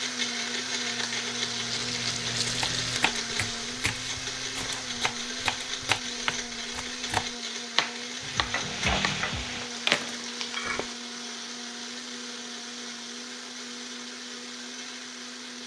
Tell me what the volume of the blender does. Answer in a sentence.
The volume of the blender goes down.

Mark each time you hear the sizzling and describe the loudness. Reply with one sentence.
You can hear the sizzling from 0.0 to 5.0 s, getting louder then quieter; and briefly from 8.2 to 10.9 s.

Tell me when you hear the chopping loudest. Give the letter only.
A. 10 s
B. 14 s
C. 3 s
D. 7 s
A.